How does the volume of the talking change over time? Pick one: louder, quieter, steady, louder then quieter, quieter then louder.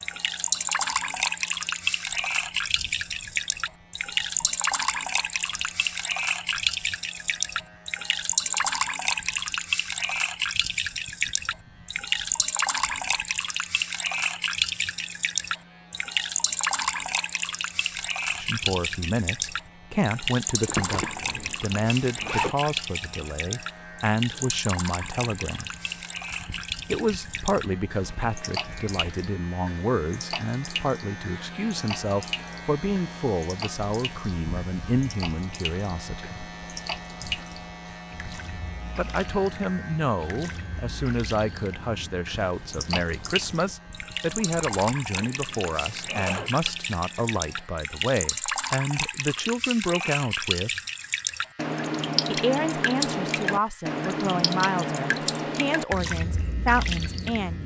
steady.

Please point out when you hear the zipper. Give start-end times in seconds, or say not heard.
20.6-22.6, 45.2-46.5.